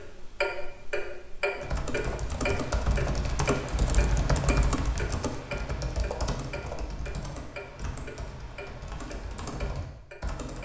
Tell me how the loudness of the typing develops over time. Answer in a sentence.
The volume of the typing goes down.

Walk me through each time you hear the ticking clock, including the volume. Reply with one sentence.
You can hear the ticking clock from 0.0 to 10.5 s, getting quieter.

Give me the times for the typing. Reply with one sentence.
You can hear the typing from 1.6 to 10.5 s.